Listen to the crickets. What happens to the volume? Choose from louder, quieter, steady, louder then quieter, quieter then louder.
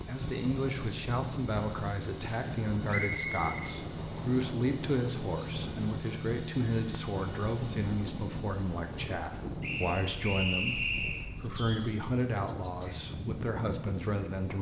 steady.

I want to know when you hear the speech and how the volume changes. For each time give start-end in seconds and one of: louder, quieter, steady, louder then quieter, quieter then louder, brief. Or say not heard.
0.1-14.5 steady.